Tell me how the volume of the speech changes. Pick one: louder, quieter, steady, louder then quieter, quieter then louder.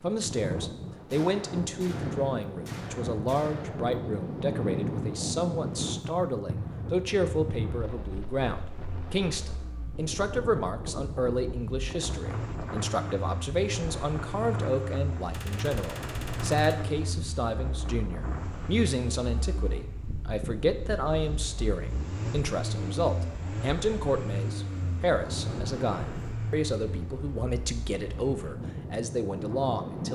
steady.